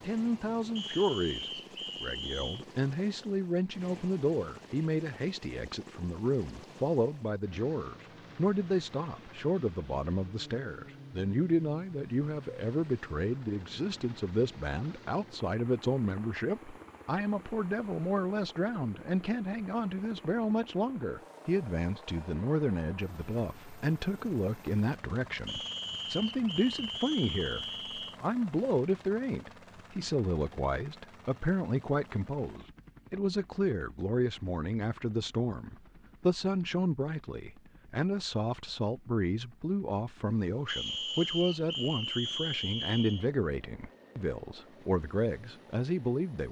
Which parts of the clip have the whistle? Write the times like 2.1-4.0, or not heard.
0.8-2.6, 25.4-28.2, 40.6-43.2.